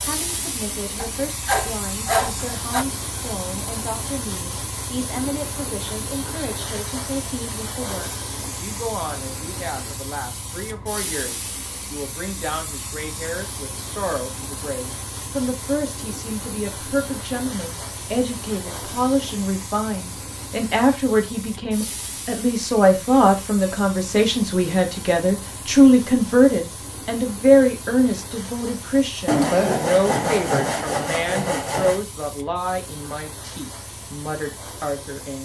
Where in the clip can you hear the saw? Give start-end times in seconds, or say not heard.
0.9-2.9, 29.2-32.0.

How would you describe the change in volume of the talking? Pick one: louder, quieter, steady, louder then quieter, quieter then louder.
louder then quieter.